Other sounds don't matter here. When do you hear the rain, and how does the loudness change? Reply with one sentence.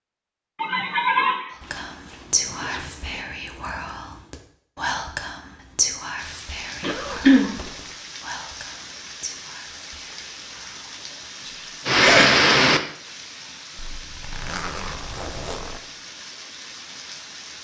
You can hear the rain from 6.2 to 17.6 s, getting louder then quieter.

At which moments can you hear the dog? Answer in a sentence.
The dog can't be heard in this clip.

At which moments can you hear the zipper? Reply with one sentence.
You can hear the zipper from 1.6 to 3.2 s, from 6.8 to 8.0 s and from 13.8 to 15.8 s.